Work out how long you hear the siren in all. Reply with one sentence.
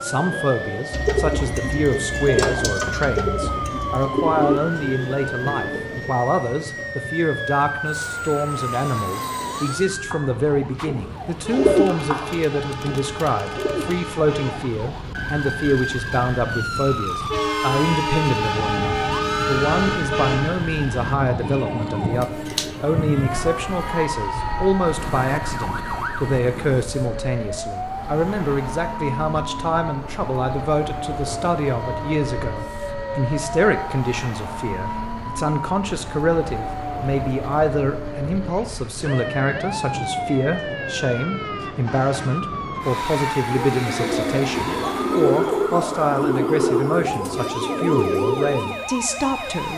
You can hear the siren for 50 seconds altogether.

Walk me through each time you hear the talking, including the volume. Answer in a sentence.
The talking can be heard from 0.0 to 49.7 s, at a steady volume.